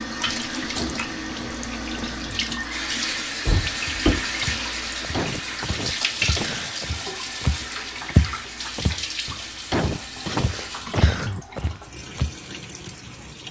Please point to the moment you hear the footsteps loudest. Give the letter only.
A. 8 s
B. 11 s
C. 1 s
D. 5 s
A.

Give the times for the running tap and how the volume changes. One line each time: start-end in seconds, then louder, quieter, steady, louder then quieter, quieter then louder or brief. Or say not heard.
0.0-13.4 quieter.